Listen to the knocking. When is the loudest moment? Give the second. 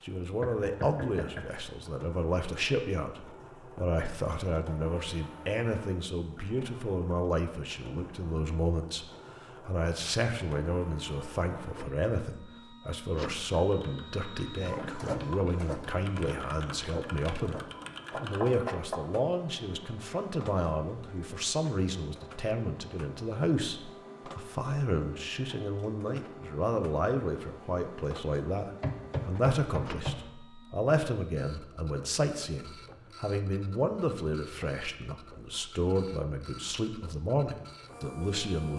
29 s.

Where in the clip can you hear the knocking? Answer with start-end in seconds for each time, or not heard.
0.4-1.4, 18.1-19.0, 28.8-30.2.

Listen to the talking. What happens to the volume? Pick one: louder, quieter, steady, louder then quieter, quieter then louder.
steady.